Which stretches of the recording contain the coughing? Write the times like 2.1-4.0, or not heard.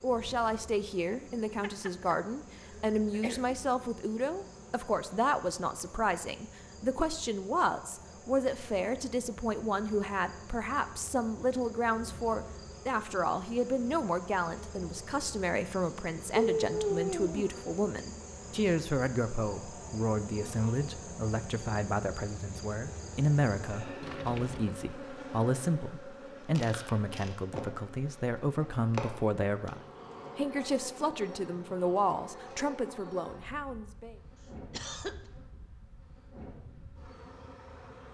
1.6-2.1, 3.1-3.5, 16.4-17.4, 34.7-35.1.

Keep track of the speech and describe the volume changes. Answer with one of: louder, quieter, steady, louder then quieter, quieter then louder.
steady.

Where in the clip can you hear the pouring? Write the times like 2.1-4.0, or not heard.
24.0-24.8.